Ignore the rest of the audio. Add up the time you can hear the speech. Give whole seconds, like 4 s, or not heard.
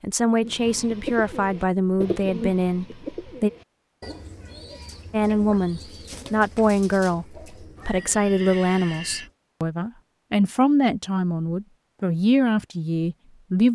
12 s.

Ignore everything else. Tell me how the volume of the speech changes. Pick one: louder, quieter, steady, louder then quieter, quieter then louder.
steady.